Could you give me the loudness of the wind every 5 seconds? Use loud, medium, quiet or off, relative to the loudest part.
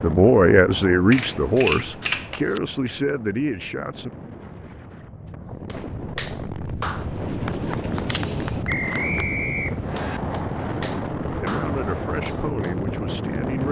medium, loud, loud.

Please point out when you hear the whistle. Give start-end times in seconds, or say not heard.
8.7-10.2.